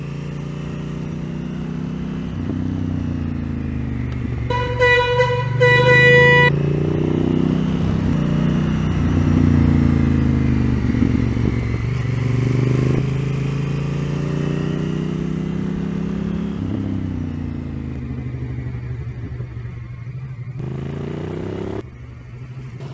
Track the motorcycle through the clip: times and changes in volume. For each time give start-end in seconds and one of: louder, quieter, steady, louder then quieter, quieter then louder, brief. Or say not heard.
0.0-22.8 louder then quieter.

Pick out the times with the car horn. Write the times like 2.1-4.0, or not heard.
4.5-6.5.